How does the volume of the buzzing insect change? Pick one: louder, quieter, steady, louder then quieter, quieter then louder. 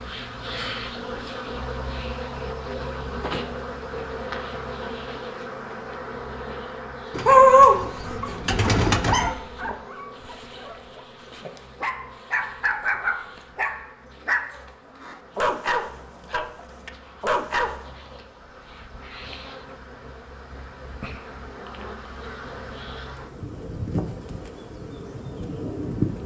quieter then louder.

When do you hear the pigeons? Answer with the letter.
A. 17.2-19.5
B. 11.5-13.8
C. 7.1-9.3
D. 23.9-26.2
C.